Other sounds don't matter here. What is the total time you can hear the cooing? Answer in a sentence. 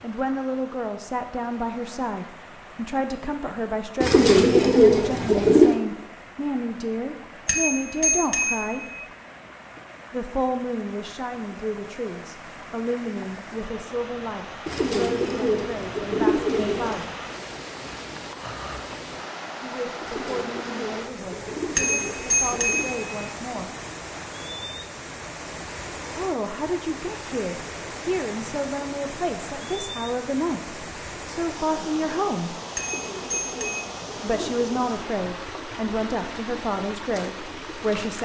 The cooing can be heard for 9 seconds in total.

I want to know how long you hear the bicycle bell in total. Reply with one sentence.
The bicycle bell can be heard for 4 seconds in total.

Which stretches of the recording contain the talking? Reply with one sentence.
The talking can be heard from 0.0 to 8.8 s, from 10.1 to 17.2 s, from 19.6 to 23.7 s, from 26.1 to 32.6 s and from 34.2 to 38.2 s.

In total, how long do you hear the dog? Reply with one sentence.
You can't hear the dog here.